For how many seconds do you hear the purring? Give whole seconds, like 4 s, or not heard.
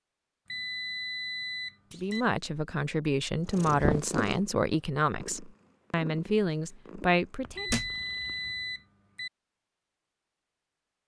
5 s.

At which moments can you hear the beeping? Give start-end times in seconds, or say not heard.
0.5-2.2, 7.5-9.3.